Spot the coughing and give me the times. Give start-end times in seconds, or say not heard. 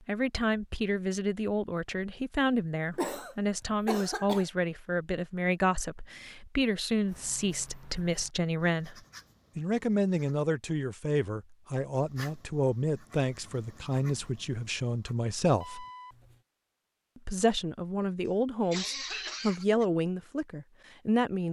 3.0-4.5, 18.2-19.9.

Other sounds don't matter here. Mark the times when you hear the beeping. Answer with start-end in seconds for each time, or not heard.
15.6-16.1.